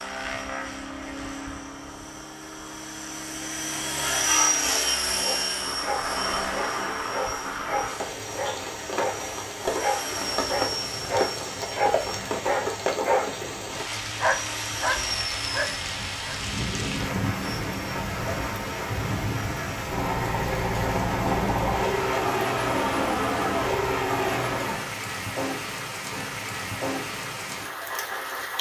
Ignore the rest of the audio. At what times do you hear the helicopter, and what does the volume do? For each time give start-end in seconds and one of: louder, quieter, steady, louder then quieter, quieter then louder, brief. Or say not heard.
0.0-24.9 quieter then louder.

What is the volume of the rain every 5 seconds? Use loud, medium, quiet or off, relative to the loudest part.
quiet, loud, loud, loud, loud, loud.